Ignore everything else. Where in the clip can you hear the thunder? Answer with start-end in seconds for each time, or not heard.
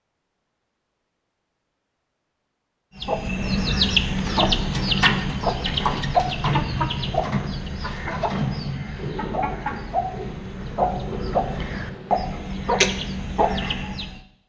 8.9-12.4.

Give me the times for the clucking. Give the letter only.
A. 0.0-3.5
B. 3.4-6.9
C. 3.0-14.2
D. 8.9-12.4
C.